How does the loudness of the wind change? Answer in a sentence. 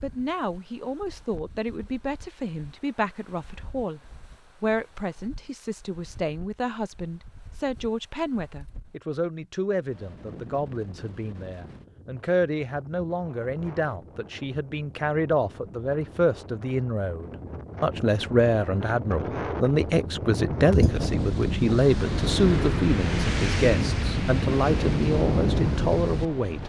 The loudness of the wind goes up.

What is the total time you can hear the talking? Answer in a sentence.
The talking can be heard for 26 seconds in total.